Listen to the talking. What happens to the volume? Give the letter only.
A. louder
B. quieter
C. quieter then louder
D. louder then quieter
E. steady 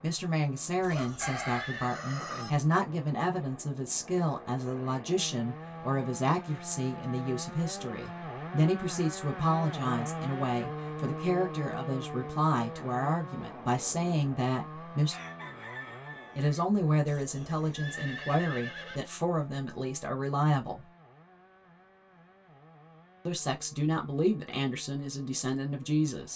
E.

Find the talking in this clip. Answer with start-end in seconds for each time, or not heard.
0.0-15.2, 16.4-20.9, 23.2-26.3.